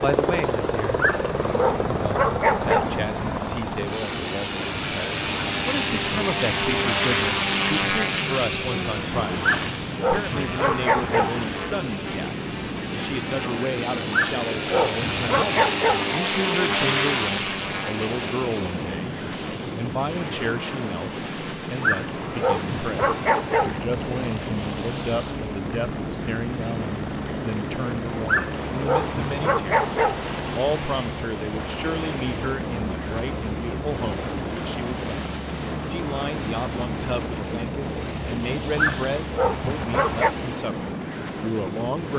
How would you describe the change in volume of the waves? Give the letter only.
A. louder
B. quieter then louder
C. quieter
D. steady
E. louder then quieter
D.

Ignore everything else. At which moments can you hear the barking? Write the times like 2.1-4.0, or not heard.
0.9-2.9, 9.4-11.4, 14.1-16.1, 21.8-24.4, 28.2-30.5, 38.8-40.4.